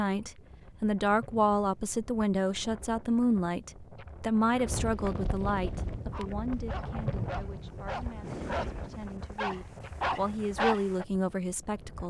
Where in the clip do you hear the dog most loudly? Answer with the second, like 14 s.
11 s.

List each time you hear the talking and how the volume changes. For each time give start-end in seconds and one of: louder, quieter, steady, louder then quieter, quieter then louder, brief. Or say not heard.
0.0-12.0 quieter then louder.